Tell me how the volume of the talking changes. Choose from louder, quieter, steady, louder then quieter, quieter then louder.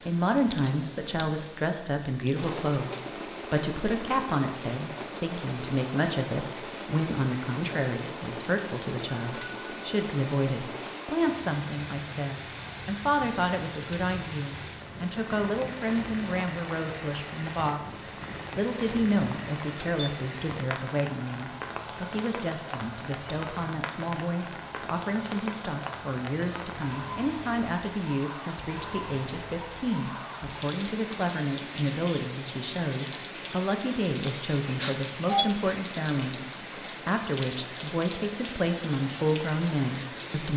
steady.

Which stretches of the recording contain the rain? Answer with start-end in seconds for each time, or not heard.
0.0-40.5.